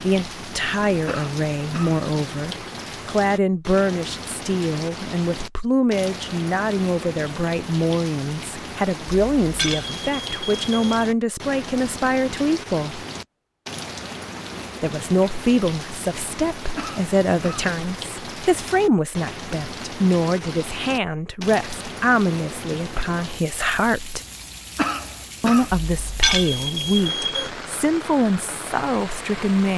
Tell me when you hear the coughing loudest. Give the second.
25 s.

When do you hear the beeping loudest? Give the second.
26 s.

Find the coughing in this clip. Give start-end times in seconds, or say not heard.
1.1-2.0, 16.8-17.7, 24.8-25.8.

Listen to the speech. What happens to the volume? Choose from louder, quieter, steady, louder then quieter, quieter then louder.
steady.